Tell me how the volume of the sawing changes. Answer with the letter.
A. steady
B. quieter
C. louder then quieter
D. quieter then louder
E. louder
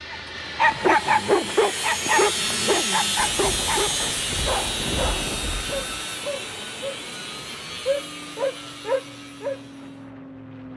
B.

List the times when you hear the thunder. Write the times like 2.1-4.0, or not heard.
3.1-6.0.